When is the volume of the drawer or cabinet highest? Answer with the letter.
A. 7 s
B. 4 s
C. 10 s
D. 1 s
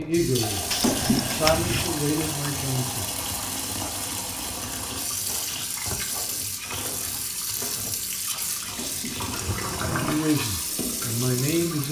D.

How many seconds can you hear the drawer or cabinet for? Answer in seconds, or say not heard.
3 s.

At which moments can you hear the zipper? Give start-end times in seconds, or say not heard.
not heard.